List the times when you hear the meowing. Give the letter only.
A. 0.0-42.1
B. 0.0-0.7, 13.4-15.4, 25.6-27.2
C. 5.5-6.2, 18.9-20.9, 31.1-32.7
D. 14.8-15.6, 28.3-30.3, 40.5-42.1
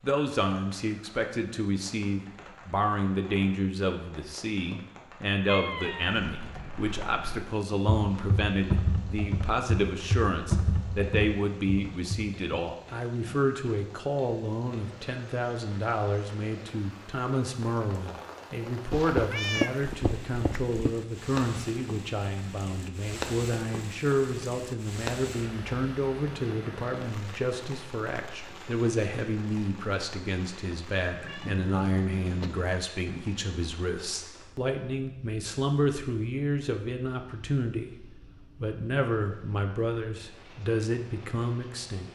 C.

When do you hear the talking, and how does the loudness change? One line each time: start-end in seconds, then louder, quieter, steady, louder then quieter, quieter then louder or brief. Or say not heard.
0.0-42.1 steady.